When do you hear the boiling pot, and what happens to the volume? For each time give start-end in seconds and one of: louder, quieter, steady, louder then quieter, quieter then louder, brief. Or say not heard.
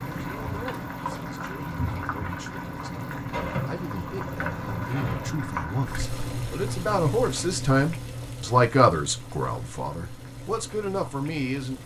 0.0-11.8 quieter.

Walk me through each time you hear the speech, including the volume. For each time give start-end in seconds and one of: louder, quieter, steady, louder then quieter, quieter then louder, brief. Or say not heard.
0.0-11.8 louder then quieter.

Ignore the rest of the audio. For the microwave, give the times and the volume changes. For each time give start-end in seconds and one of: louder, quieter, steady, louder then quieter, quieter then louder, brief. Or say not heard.
not heard.